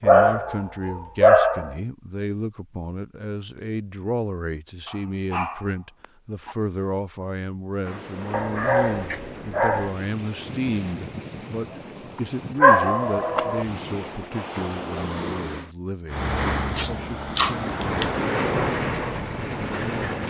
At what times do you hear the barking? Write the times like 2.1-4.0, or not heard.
0.1-1.8, 4.8-6.5, 8.3-9.9, 12.6-13.7, 16.8-18.1.